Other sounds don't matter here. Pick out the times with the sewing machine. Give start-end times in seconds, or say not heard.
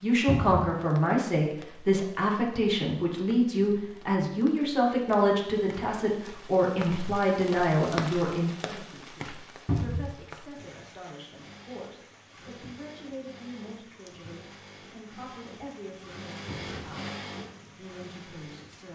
11.2-18.9.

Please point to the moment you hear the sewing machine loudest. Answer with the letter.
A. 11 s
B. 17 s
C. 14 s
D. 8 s
B.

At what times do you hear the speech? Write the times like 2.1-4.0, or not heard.
0.0-18.9.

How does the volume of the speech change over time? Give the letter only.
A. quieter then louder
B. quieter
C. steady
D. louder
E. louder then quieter
B.